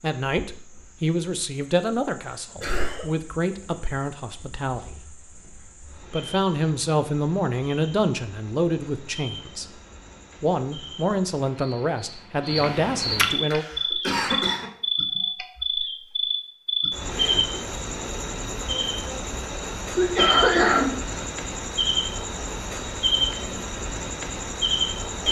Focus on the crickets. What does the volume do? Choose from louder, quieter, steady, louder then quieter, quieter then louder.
louder.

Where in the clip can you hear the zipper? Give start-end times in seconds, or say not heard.
not heard.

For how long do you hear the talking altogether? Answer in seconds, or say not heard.
12 s.